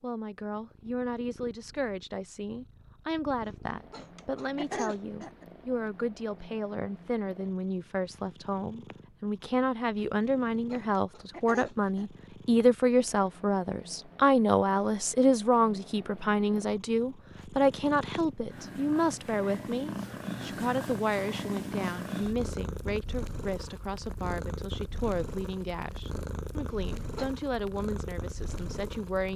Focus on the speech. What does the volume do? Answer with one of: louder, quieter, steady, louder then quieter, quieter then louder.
louder then quieter.